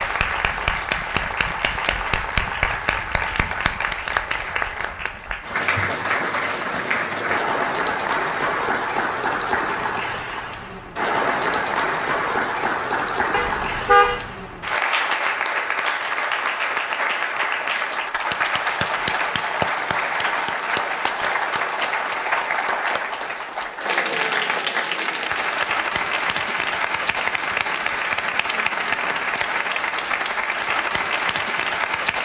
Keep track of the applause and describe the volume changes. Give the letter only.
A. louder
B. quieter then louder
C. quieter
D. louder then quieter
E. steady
E.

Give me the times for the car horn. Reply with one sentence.
The car horn can be heard from 13.3 to 14.2 s.